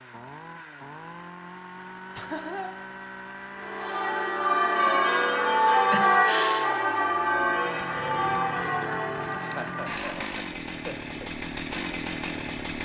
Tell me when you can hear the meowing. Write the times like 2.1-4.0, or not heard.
not heard.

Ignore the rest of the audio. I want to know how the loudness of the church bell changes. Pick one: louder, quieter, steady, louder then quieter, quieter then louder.
quieter.